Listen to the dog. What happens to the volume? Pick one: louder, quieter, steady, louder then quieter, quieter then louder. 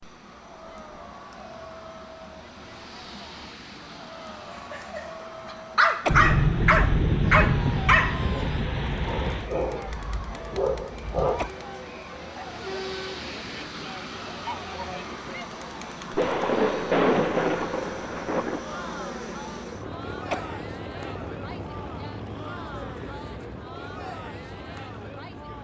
quieter.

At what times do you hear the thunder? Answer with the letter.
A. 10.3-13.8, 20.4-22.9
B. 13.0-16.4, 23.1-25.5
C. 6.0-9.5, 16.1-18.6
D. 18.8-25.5
C.